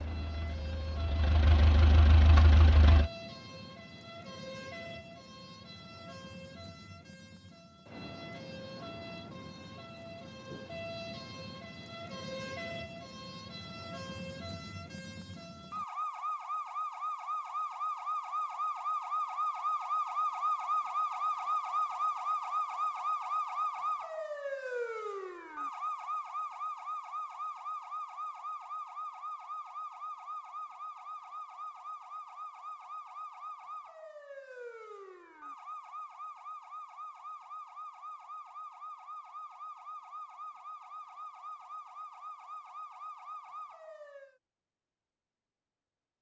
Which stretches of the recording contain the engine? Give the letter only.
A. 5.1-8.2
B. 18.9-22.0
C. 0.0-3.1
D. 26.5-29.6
C.